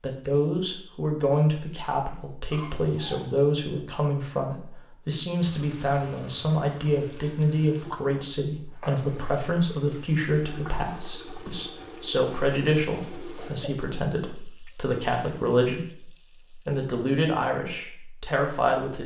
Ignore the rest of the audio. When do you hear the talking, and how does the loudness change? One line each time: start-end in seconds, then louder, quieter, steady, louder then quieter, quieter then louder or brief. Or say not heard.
0.0-19.0 steady.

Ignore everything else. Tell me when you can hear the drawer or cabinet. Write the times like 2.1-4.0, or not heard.
not heard.